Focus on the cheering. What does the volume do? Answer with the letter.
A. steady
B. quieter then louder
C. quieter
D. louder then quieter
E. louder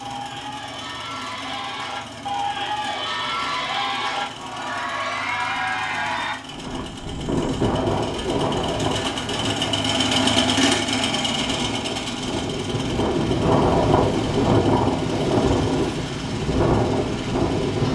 E.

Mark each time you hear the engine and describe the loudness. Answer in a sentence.
The engine can be heard from 0.0 to 17.8 s, getting louder then quieter.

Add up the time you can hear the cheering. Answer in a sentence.
The cheering can be heard for 6 seconds in total.